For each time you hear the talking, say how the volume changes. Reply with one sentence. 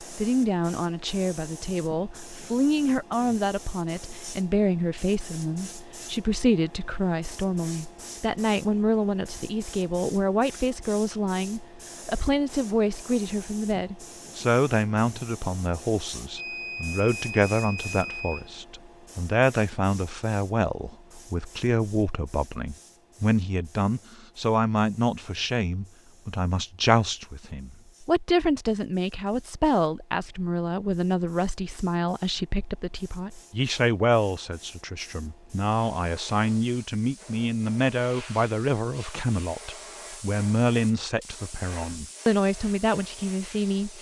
You can hear the talking from 0.1 to 43.9 s, at a steady volume.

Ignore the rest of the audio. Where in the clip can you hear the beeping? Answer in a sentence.
The beeping can be heard from 16.4 to 18.6 s.